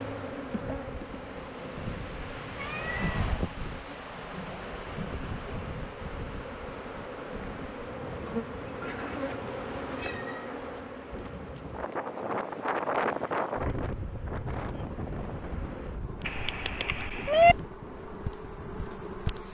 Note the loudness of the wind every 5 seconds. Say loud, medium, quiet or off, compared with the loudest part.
medium, medium, loud, medium.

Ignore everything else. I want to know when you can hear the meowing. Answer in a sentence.
You can hear the meowing from 2.4 to 3.2 s, from 8.8 to 10.8 s and from 16.2 to 17.6 s.